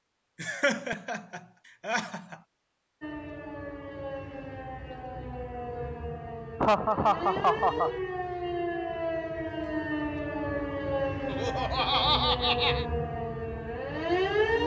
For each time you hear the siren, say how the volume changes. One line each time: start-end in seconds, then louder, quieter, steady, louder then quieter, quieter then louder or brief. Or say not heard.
3.0-14.6 louder.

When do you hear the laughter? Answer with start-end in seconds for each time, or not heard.
0.4-2.4, 6.6-7.9, 11.3-12.8.